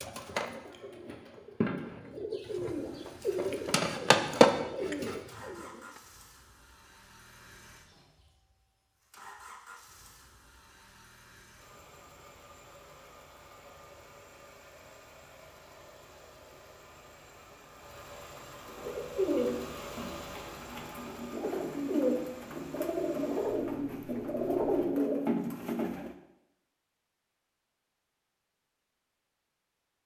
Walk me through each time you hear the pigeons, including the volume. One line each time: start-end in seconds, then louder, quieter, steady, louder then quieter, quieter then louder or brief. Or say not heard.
0.0-5.7 louder
18.6-26.1 quieter then louder.